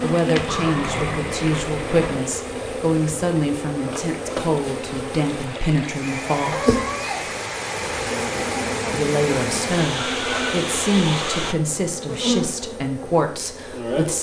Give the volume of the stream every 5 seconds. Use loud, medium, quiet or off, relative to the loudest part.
medium, loud, loud.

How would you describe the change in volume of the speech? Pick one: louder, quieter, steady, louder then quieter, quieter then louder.
steady.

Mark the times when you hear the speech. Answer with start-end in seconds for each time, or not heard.
0.0-6.8, 8.9-14.1.